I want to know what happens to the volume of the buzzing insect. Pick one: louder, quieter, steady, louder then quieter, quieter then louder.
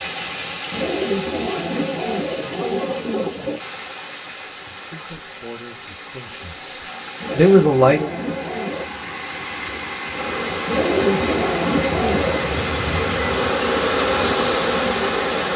louder.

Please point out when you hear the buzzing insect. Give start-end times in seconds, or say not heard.
10.1-15.5.